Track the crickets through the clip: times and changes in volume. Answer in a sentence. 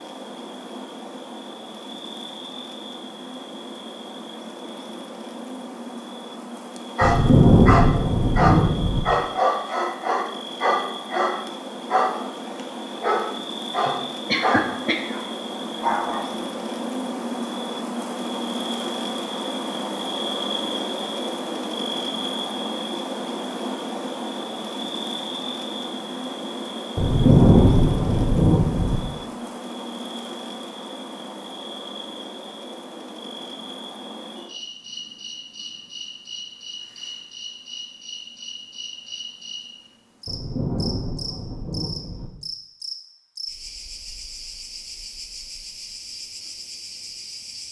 You can hear the crickets from 0.0 to 47.6 s, getting louder then quieter.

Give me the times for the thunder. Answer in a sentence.
You can hear the thunder from 7.0 to 9.0 s, from 26.9 to 29.0 s and from 40.2 to 42.3 s.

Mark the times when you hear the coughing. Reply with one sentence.
You can hear the coughing from 13.8 to 15.2 s.